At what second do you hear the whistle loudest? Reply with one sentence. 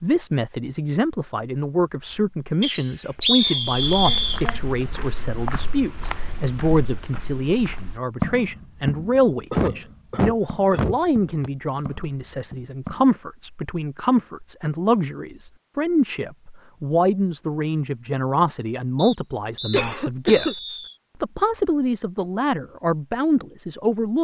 The volume of the whistle peaks at 3 seconds.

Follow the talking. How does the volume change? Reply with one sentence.
The volume of the talking stays about the same.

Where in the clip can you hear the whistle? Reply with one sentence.
You can hear the whistle from 2.6 to 4.4 s, from 10.8 to 11.5 s and from 18.9 to 20.9 s.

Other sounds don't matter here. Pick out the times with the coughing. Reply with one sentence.
You can hear the coughing from 3.4 to 4.7 s, from 9.5 to 11.0 s and from 19.7 to 20.6 s.